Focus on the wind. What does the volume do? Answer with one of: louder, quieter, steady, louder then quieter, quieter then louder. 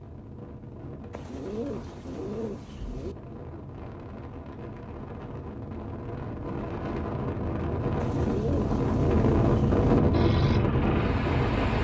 louder.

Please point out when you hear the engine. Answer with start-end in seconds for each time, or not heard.
10.1-11.7.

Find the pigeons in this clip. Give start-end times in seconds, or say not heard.
1.1-3.1, 8.0-10.0.